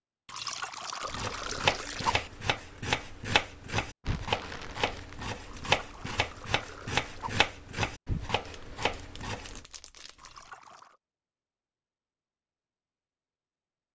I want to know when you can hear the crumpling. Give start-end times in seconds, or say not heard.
4.0-5.3, 8.4-10.5.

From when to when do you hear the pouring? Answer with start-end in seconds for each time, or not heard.
0.2-2.3, 5.5-7.5, 10.2-10.9.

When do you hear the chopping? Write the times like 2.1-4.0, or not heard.
1.1-9.7.